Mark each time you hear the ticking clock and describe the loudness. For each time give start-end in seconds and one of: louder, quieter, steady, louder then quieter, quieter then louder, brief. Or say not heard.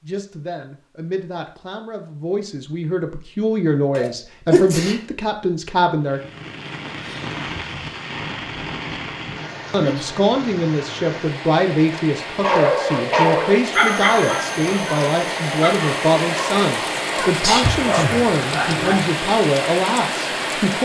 not heard.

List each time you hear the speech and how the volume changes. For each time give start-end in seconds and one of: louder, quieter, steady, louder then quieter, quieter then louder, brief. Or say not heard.
0.0-6.2 louder
9.7-20.8 steady.